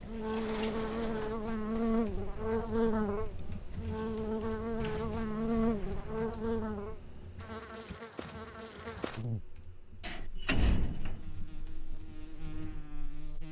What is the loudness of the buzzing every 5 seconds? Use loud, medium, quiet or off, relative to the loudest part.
loud, loud, quiet.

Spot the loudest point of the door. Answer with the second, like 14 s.
11 s.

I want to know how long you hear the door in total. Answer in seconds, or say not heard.
4 s.